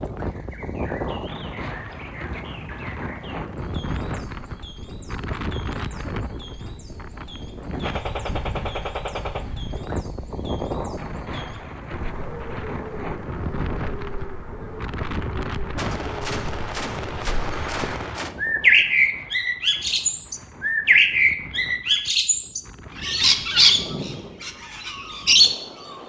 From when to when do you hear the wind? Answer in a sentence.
The wind can be heard from 0.0 to 26.0 s.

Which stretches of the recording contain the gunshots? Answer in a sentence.
The gunshots can be heard from 7.8 to 9.4 s and from 15.8 to 18.4 s.